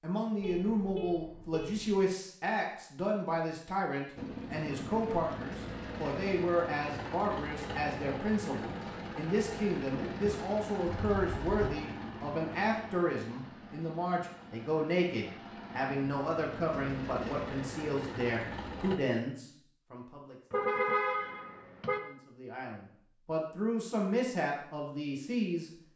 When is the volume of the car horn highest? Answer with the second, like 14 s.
21 s.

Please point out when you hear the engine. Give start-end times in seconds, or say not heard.
4.2-19.0.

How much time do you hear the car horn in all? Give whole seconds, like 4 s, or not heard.
4 s.